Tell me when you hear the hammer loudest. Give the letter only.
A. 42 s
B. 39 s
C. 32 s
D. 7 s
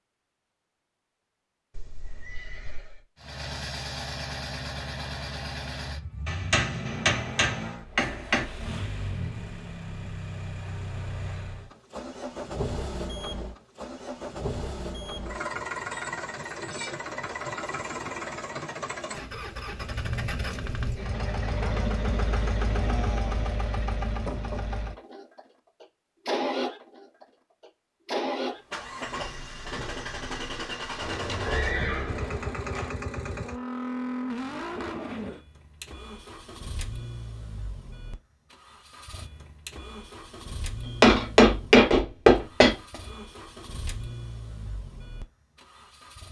A.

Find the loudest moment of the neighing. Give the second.
32 s.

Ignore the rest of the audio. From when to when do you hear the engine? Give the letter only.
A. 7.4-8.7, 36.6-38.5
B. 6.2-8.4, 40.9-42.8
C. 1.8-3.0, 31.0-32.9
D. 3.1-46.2
D.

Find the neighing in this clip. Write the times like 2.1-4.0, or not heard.
1.8-3.0, 31.0-32.9.